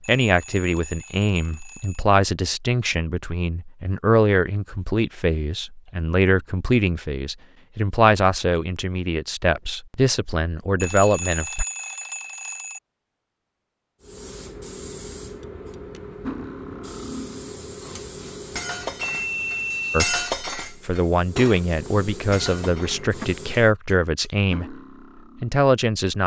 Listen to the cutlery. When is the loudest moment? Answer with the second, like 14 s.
20 s.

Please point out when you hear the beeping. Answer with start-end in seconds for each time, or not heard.
0.0-2.0, 10.8-12.8, 19.0-20.3.